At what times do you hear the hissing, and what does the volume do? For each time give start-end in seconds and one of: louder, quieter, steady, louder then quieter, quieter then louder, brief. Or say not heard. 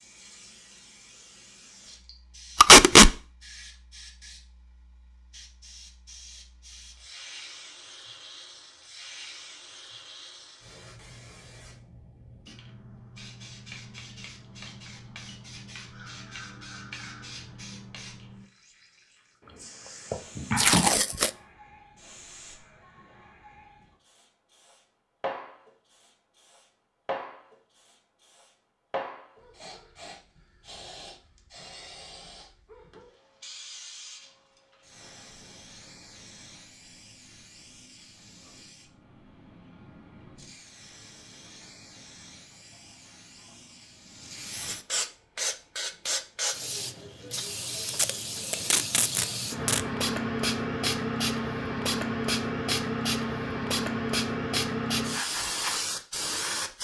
0.0-56.7 louder.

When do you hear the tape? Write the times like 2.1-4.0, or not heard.
2.6-3.1, 20.6-21.3, 47.9-49.8.